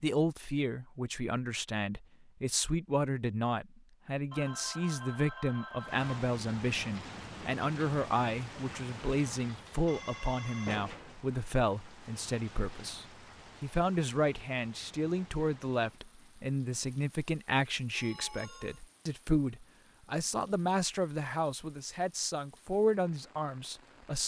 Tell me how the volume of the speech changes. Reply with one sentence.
The volume of the speech stays about the same.